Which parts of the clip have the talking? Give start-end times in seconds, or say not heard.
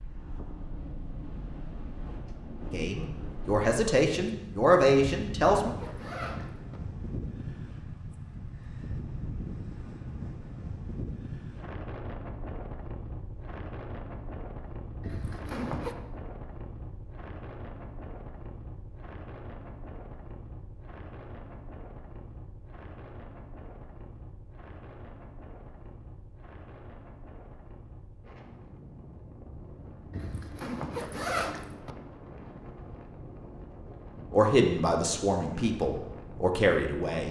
2.6-5.7, 34.3-37.2.